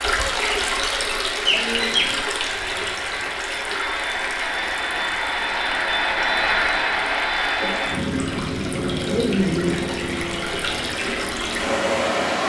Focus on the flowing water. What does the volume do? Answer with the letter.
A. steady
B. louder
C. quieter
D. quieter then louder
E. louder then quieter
D.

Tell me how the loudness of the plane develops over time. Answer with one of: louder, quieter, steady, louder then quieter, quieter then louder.
louder then quieter.